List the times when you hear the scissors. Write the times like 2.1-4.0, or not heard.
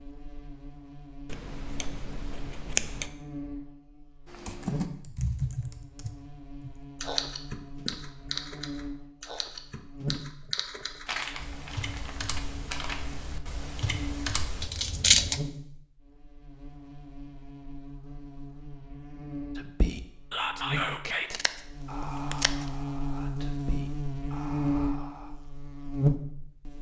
1.2-3.1, 14.6-15.4, 21.3-22.6.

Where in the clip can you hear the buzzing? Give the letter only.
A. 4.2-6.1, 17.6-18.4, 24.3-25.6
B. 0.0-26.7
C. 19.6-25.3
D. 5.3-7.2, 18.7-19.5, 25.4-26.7
B.